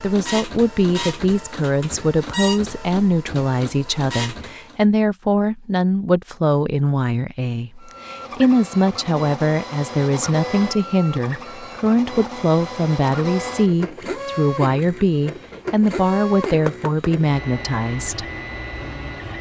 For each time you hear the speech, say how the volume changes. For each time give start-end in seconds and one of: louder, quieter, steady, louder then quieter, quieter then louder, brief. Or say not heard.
0.0-18.2 steady.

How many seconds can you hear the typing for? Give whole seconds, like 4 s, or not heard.
not heard.